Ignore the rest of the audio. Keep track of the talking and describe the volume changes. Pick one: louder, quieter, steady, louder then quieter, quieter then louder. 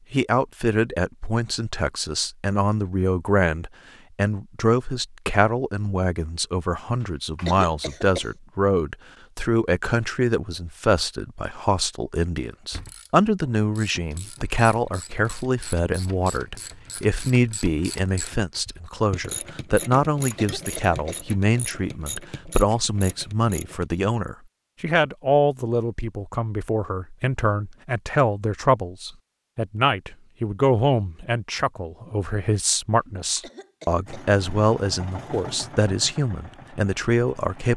steady.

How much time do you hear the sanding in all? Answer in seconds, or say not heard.
not heard.